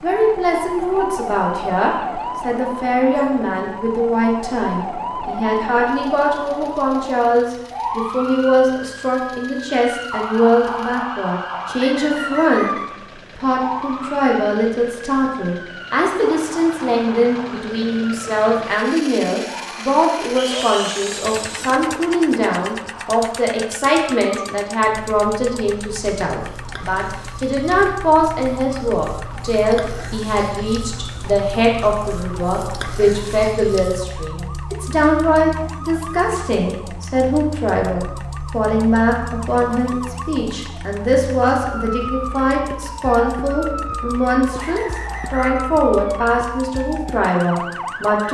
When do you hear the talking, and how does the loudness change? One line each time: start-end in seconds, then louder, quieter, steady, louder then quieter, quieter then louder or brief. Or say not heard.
0.0-12.7 steady
13.3-48.2 steady.